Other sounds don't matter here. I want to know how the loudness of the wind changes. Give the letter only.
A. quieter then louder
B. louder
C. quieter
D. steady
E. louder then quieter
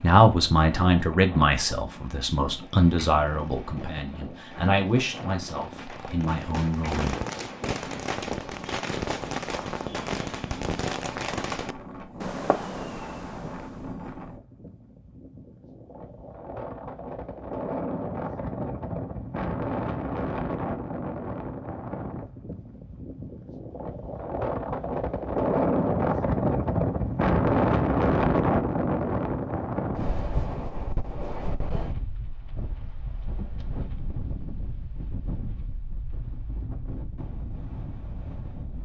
E.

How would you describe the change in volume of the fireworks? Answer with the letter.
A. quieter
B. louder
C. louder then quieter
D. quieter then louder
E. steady
B.